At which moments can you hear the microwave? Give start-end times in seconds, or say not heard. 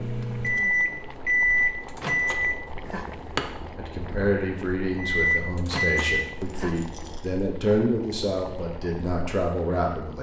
0.0-3.5, 5.1-6.9.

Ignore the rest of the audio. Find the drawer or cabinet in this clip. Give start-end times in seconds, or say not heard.
not heard.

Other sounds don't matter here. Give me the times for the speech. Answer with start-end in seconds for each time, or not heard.
3.8-10.1.